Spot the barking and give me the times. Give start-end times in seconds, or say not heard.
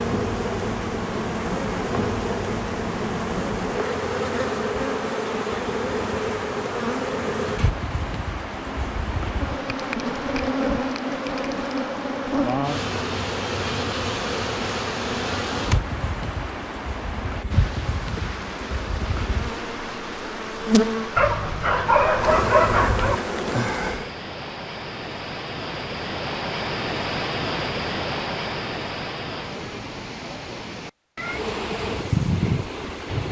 21.1-23.2.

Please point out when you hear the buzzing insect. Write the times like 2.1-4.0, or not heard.
0.0-24.1, 31.2-33.2.